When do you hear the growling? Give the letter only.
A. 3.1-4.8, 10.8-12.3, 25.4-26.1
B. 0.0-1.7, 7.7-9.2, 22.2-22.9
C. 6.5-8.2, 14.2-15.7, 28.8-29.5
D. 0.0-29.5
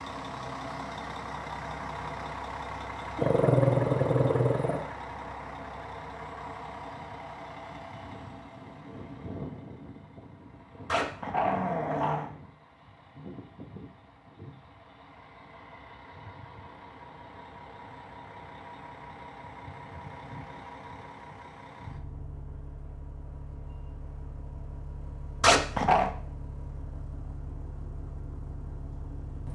A.